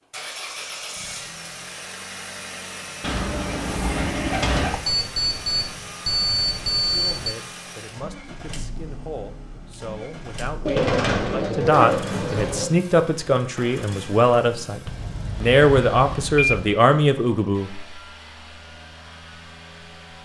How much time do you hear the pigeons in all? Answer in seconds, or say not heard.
4 s.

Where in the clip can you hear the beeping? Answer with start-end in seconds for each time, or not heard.
4.7-7.3, 14.8-16.8.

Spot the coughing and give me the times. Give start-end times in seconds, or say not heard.
not heard.